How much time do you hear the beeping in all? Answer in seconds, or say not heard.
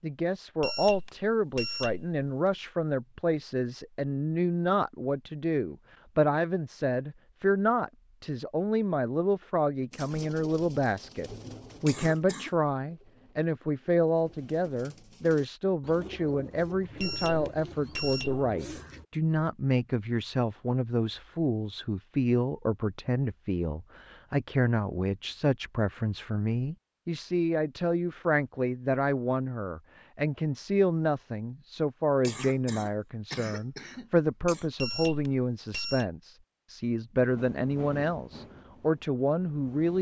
4 s.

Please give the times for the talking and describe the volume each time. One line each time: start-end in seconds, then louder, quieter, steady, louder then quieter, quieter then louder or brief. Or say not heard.
0.0-39.9 steady.